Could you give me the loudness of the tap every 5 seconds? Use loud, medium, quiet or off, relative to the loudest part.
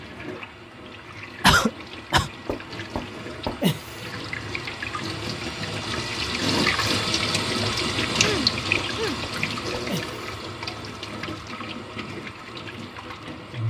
medium, loud, medium.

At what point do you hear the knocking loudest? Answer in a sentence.
The loudest moment of the knocking is at 4 seconds.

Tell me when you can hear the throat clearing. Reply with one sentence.
The throat clearing can be heard from 1.4 to 2.3 s and from 8.0 to 9.2 s.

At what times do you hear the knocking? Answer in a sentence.
You can hear the knocking from 2.5 to 4.0 s and from 8.8 to 10.2 s.